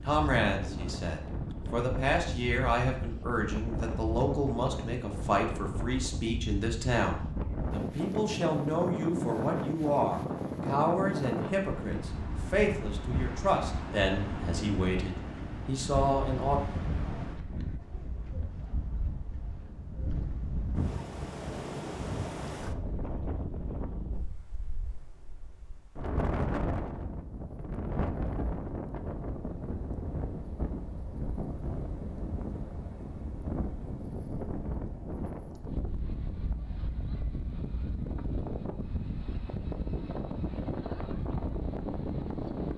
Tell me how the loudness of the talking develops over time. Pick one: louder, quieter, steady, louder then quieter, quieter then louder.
steady.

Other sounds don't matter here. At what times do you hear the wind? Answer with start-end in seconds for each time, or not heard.
0.0-42.7.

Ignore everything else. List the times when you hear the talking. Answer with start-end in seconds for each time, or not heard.
0.0-16.6.